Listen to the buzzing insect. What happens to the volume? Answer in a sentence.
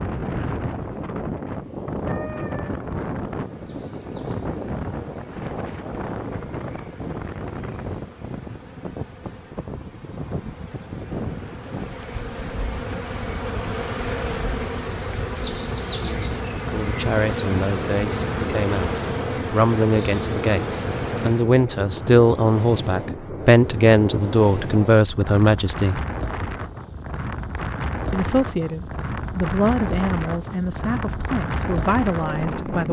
The loudness of the buzzing insect goes up.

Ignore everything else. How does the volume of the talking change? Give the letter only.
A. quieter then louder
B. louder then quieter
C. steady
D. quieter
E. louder
B.